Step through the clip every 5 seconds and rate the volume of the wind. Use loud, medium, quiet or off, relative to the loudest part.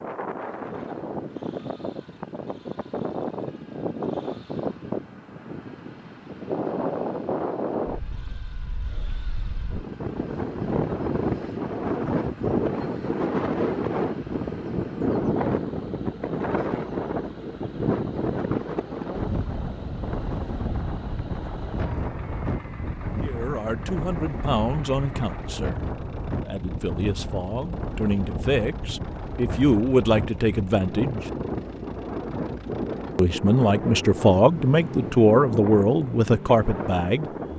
medium, medium, loud, loud, medium, medium, medium, medium.